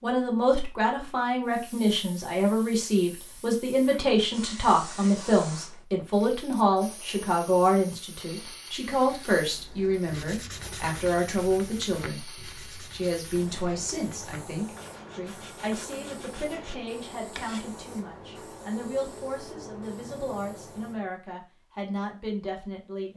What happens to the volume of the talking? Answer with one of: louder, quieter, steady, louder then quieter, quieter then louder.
quieter.